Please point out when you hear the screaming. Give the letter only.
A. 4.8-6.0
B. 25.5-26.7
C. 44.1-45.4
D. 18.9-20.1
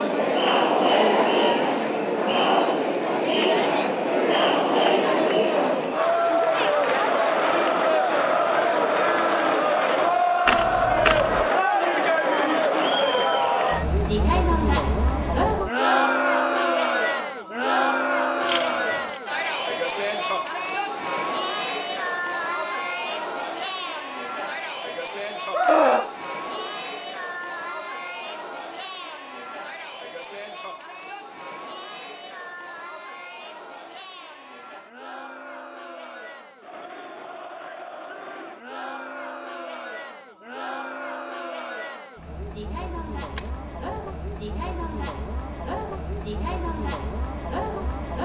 B.